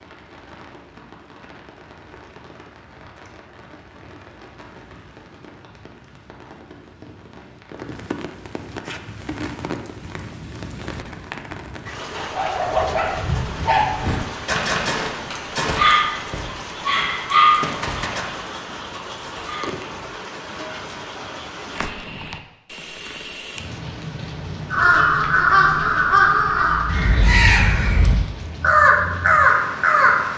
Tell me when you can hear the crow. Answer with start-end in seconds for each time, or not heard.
24.7-30.1.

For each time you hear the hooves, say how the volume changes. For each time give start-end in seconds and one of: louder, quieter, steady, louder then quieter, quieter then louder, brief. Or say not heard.
not heard.